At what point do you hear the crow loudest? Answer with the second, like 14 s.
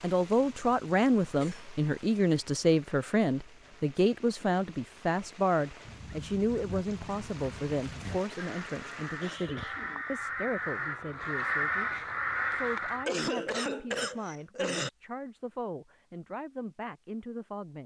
12 s.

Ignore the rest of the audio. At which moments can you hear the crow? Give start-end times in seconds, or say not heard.
5.8-13.1.